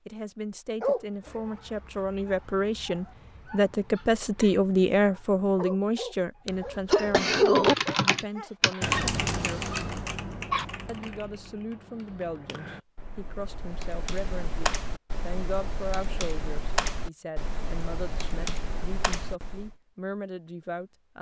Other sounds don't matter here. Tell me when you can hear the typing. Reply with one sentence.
You can hear the typing from 7.3 to 19.8 s.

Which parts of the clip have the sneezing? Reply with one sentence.
The sneezing can be heard from 6.5 to 7.8 s.